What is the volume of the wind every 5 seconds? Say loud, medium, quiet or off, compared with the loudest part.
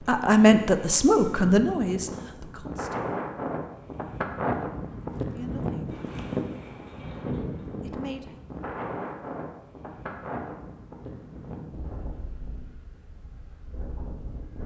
loud, loud, medium.